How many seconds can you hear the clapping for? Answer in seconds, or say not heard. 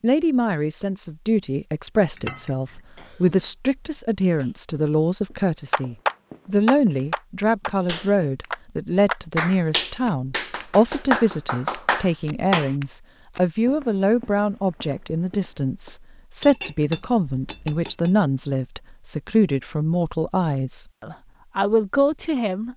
7 s.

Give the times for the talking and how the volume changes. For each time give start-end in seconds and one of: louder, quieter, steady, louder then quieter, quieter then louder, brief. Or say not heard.
0.0-22.7 steady.